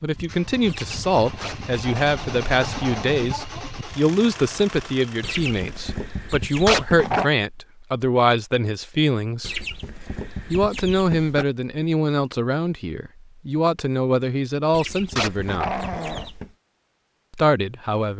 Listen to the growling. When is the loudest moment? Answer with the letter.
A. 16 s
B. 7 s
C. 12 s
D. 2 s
B.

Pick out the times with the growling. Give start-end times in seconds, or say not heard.
1.4-3.3, 6.7-7.3, 15.2-16.3.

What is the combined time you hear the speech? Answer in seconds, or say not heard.
16 s.